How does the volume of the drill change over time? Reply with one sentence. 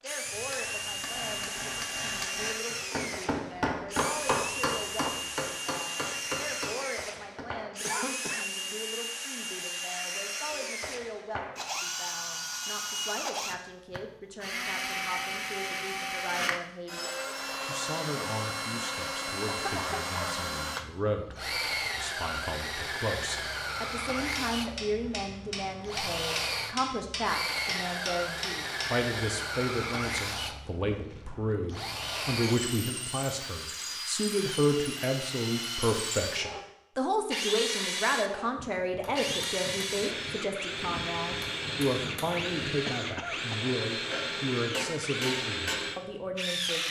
The volume of the drill stays about the same.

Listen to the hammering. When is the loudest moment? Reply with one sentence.
The loudest moment of the hammering is at 4 seconds.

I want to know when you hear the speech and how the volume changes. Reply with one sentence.
The speech can be heard from 0.0 to 46.8 s, getting louder.